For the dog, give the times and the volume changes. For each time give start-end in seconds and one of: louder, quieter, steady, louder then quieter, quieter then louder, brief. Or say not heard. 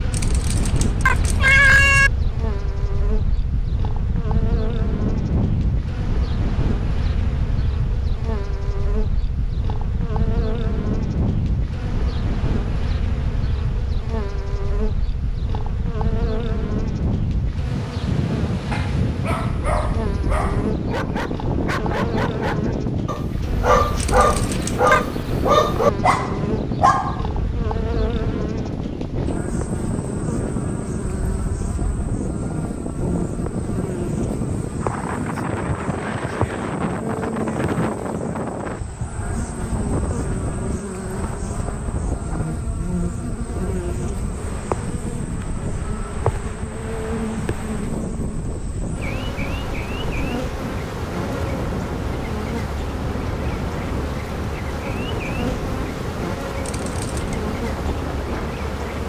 18.7-27.2 louder.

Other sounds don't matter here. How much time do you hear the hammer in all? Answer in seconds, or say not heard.
not heard.